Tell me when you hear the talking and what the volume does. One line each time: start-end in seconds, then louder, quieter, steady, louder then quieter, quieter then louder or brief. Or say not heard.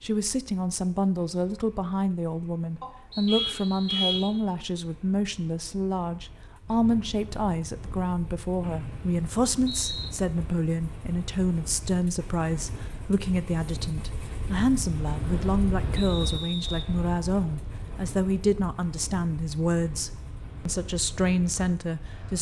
0.0-22.3 steady.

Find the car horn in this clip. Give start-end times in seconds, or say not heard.
2.8-4.2.